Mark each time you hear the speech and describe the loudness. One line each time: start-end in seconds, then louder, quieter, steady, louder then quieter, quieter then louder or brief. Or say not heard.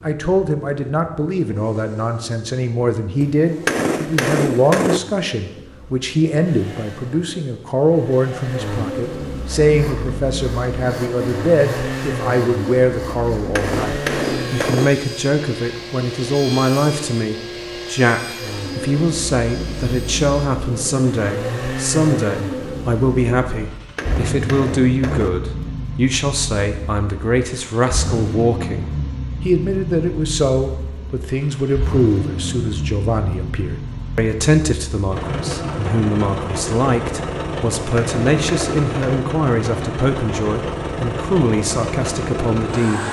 0.0-43.0 steady.